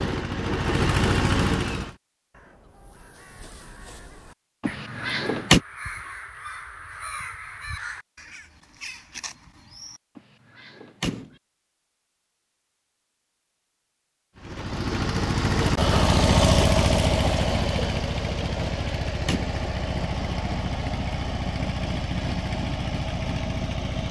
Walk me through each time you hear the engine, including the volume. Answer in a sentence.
You can hear the engine briefly from 0.0 to 1.9 s; and from 14.3 to 24.0 s, getting quieter.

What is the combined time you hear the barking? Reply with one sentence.
You can't hear the barking here.